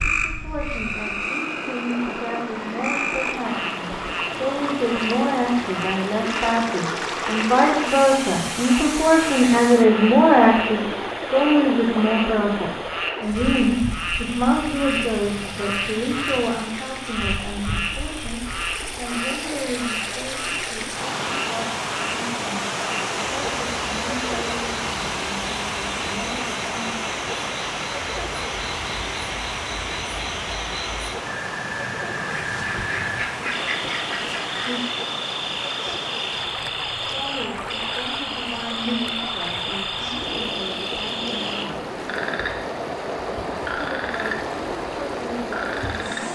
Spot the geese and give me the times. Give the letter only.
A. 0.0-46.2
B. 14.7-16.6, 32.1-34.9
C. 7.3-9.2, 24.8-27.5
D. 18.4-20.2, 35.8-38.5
B.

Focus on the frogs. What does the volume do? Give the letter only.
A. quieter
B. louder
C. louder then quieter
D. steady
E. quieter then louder
D.